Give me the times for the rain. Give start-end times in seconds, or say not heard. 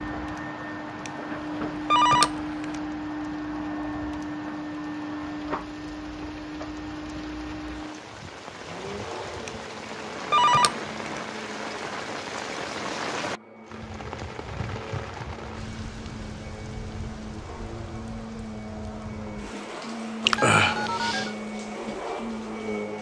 0.0-22.9.